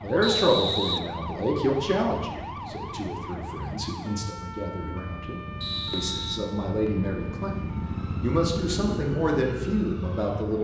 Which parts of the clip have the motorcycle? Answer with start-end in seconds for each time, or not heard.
0.1-10.5.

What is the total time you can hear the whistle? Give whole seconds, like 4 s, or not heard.
2 s.